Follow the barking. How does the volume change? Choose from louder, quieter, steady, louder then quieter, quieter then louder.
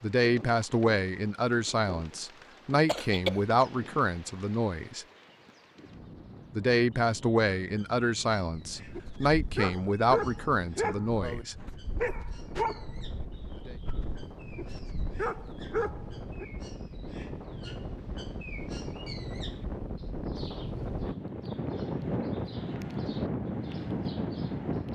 quieter then louder.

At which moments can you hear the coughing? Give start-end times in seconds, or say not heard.
2.9-3.4.